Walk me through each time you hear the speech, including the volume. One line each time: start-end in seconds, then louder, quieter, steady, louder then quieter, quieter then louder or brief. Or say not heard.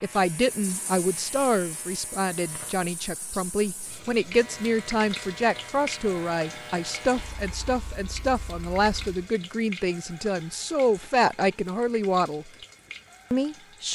0.0-12.5 steady
13.3-13.9 brief.